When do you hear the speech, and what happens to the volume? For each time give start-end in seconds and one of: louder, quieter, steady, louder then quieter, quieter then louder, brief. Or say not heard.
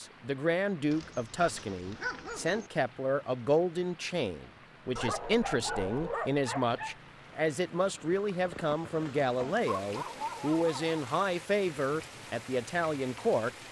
0.0-13.5 steady.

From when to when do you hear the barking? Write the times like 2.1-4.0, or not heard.
0.9-2.7, 5.0-7.0, 9.3-11.1.